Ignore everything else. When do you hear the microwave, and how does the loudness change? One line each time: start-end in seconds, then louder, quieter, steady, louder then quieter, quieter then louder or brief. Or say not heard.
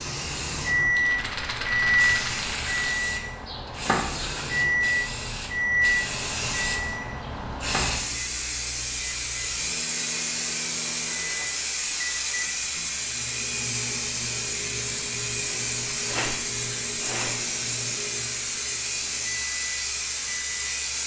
0.0-21.0 quieter.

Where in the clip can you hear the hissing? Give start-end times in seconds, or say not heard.
0.0-21.0.